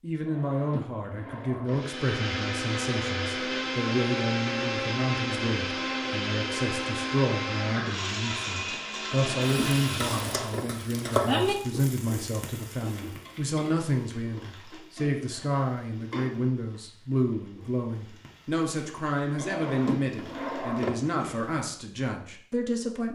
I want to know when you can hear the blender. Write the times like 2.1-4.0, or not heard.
1.6-10.6.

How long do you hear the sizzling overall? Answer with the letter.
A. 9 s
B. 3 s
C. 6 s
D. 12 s
D.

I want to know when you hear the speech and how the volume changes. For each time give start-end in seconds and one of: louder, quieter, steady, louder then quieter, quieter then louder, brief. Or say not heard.
0.0-23.1 steady.